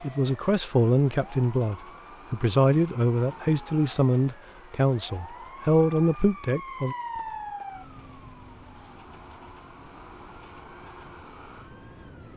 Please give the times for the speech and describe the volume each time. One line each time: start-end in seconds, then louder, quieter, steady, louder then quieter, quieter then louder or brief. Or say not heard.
0.0-7.0 steady.